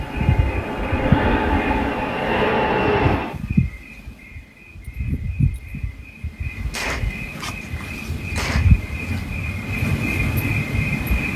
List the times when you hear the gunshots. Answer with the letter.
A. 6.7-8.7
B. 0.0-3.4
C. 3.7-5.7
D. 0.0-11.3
A.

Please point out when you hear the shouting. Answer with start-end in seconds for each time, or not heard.
not heard.